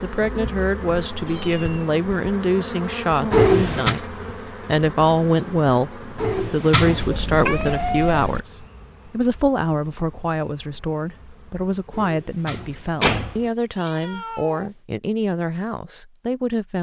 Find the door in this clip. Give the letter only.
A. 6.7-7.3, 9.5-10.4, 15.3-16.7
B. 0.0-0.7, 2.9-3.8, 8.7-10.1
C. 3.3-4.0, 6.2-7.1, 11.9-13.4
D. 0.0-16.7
C.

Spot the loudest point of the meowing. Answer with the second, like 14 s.
8 s.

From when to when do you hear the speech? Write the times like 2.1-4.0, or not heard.
0.0-16.7.